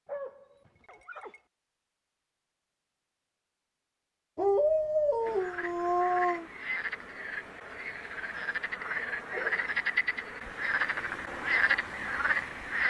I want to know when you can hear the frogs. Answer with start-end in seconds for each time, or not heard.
5.2-12.8.